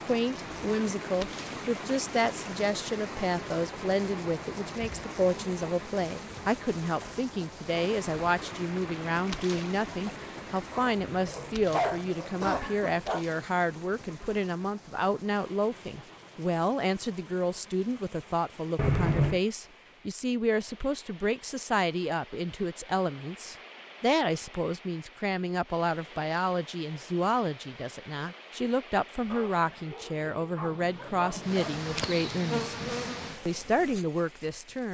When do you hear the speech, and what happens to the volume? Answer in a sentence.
You can hear the speech from 0.0 to 34.8 s, at a steady volume.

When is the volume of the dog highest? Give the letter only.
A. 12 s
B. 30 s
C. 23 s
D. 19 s
A.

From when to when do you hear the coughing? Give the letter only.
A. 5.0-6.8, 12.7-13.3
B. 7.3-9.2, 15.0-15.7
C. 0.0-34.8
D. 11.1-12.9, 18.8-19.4
D.